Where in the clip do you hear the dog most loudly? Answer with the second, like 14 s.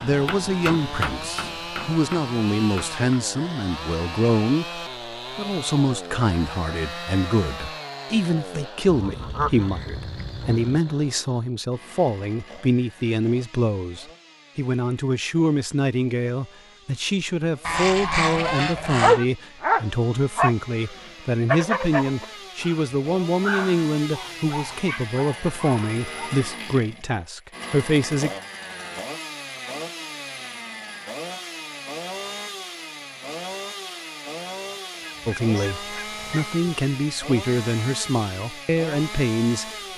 19 s.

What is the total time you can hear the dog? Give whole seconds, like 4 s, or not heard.
7 s.